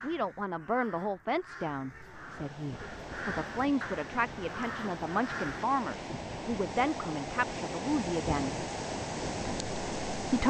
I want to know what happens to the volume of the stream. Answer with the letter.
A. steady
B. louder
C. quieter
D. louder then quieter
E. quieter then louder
B.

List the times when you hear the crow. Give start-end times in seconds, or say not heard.
0.0-5.7.